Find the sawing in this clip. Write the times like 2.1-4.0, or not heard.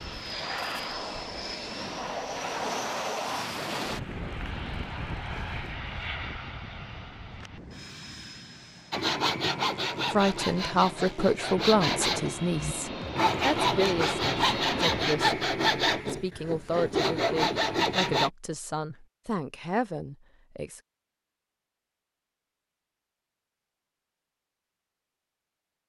8.9-18.3.